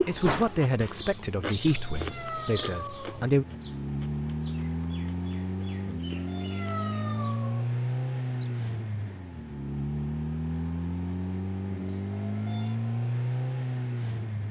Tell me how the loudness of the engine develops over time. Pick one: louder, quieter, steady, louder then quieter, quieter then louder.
louder.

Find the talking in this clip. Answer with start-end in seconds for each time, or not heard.
0.1-3.5.